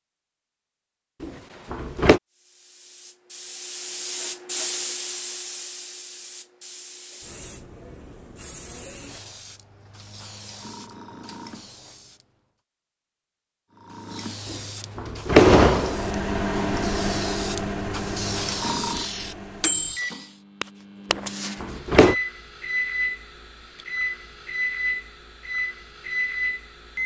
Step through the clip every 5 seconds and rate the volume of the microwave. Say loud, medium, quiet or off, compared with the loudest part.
off, off, off, loud, loud, loud.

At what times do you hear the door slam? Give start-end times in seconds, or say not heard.
1.2-2.2, 14.5-16.1, 21.1-22.1.